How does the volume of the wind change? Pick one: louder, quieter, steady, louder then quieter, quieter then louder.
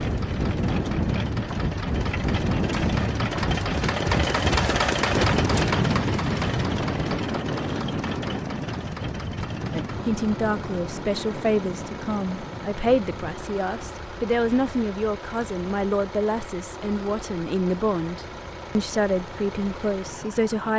quieter.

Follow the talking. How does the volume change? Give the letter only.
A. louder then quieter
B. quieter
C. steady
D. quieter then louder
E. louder
C.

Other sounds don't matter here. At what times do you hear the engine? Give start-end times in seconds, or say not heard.
0.0-20.7.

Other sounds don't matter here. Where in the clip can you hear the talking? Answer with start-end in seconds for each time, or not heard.
9.7-20.7.